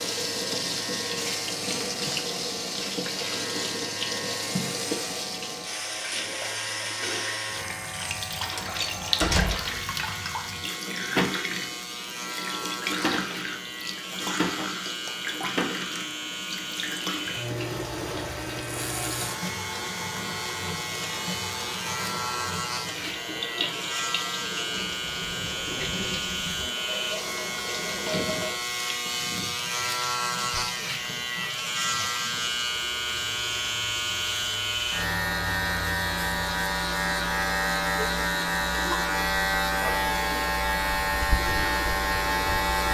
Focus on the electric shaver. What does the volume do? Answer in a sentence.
The volume of the electric shaver goes up.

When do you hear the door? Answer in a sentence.
The door can be heard from 8.4 to 9.9 s.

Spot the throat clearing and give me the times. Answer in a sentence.
You can hear the throat clearing from 28.1 to 29.6 s.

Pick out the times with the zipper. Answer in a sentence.
The zipper can't be heard in this clip.